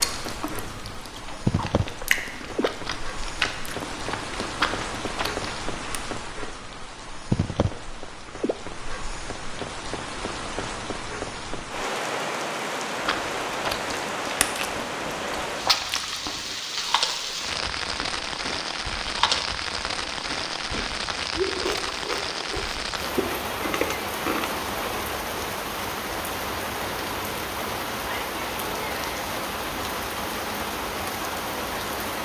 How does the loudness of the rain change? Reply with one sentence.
The loudness of the rain stays about the same.